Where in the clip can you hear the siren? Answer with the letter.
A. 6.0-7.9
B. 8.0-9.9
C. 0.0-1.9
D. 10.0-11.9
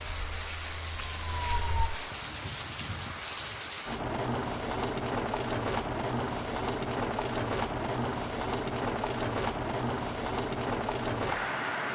C.